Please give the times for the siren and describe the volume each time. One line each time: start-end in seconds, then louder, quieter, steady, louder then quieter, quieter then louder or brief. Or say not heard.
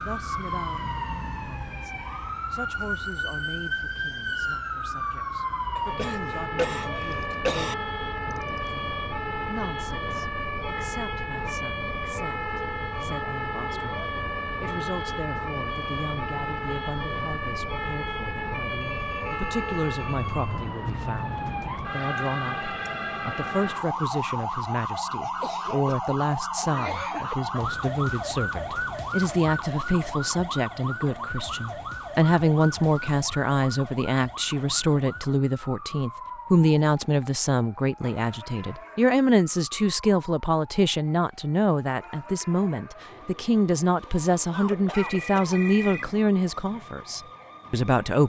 0.0-48.2 quieter.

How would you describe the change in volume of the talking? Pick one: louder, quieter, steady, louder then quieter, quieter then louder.
louder.